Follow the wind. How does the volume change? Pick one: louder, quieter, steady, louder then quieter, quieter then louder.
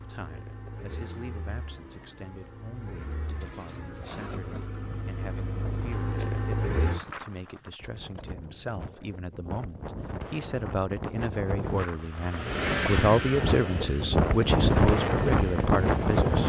louder.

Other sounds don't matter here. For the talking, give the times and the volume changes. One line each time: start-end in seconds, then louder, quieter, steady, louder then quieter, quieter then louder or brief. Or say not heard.
0.0-16.4 louder.